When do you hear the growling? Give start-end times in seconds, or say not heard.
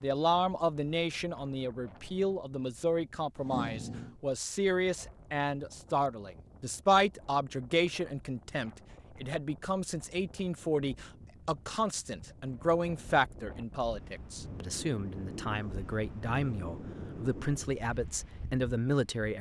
3.4-4.2.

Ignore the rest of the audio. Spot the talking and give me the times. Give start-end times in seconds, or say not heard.
0.0-19.3.